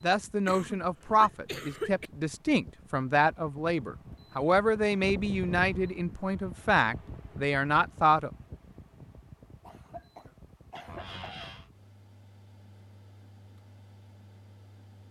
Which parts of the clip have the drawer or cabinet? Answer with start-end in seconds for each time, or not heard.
10.8-11.7.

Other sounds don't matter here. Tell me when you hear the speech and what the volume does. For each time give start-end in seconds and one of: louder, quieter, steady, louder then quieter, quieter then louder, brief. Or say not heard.
0.0-8.3 steady.